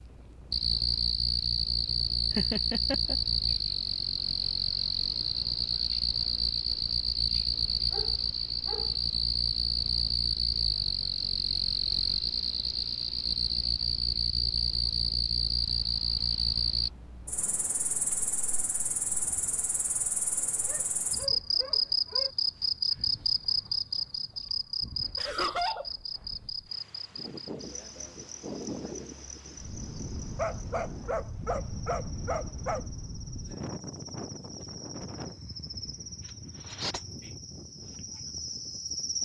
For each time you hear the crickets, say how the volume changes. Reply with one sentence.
The crickets can be heard from 0.0 to 39.2 s, getting quieter.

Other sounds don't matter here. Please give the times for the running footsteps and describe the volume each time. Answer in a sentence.
The running footsteps can't be heard in this clip.